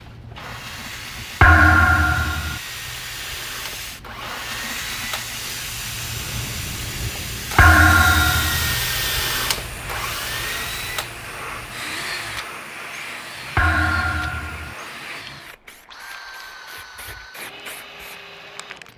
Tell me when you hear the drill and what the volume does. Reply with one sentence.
The drill can be heard from 0.0 to 18.9 s, getting louder then quieter.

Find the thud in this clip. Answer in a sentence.
The thud can be heard from 1.4 to 2.6 s, from 7.5 to 8.8 s and from 13.6 to 14.8 s.